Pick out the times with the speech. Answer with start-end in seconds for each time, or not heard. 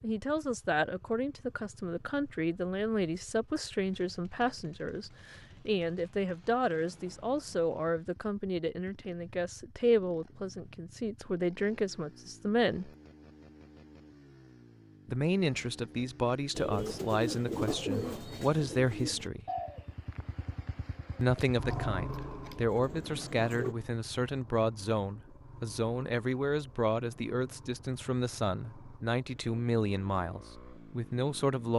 0.0-12.9, 15.1-19.4, 21.2-31.7.